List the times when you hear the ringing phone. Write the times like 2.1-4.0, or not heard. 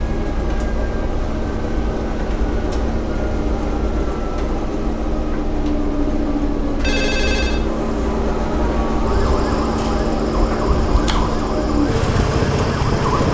6.8-7.7.